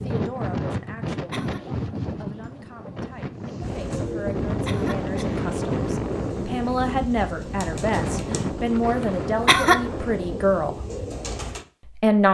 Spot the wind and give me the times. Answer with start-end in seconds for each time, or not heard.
0.0-10.6.